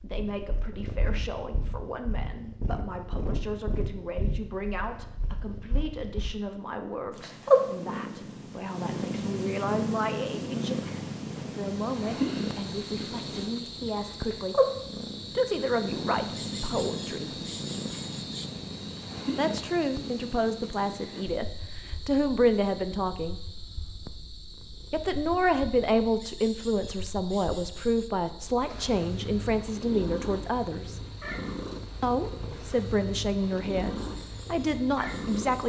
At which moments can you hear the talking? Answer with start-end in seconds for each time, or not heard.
0.0-14.6, 15.3-17.3, 19.4-23.4, 24.9-31.0, 32.0-35.6.